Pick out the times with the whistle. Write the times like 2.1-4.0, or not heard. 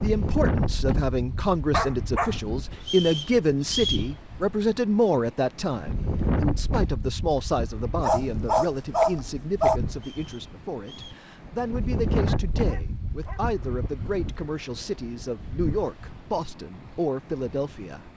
2.8-4.1, 9.9-11.2.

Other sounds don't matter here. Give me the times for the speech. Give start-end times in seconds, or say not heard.
0.0-18.0.